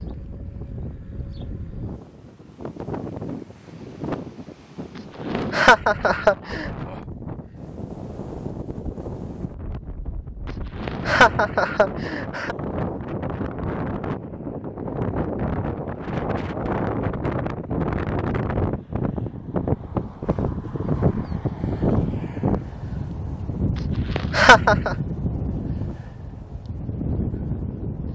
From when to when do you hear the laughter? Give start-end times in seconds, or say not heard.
5.3-6.7, 10.8-12.6, 24.1-24.9.